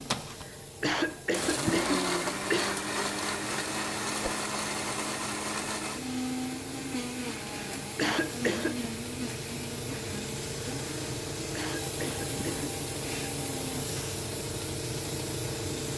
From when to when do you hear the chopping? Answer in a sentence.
The chopping can't be heard in this clip.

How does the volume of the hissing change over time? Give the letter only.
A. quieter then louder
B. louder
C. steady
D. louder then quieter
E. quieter
B.